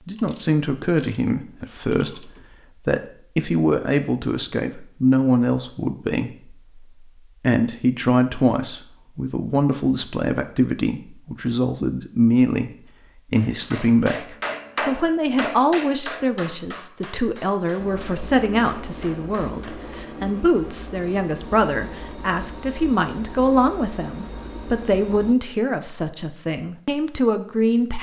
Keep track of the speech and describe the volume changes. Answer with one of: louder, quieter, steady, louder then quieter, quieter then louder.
steady.